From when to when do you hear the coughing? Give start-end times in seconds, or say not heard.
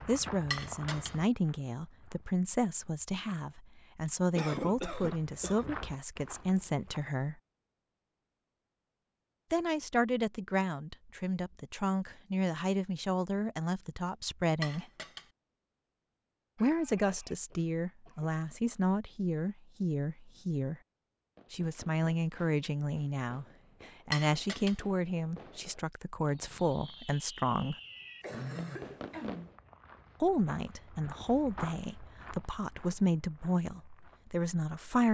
4.3-5.8, 16.6-18.2, 28.2-29.5.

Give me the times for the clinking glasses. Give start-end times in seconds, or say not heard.
0.5-1.1, 14.6-15.2, 24.1-24.8.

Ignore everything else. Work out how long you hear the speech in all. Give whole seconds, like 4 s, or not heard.
28 s.